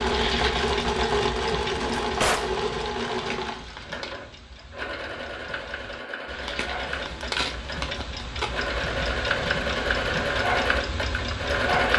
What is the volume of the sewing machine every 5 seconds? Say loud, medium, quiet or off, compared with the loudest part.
loud, medium, loud.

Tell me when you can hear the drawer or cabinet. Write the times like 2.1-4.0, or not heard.
1.7-2.5.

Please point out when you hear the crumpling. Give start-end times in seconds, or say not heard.
3.1-4.2, 6.4-8.7.